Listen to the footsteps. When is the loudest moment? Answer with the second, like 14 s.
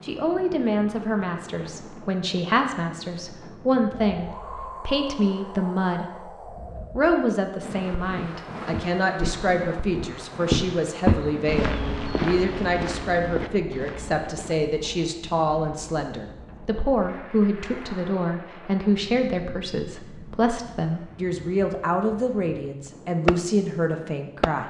11 s.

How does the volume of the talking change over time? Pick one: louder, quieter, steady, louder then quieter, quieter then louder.
steady.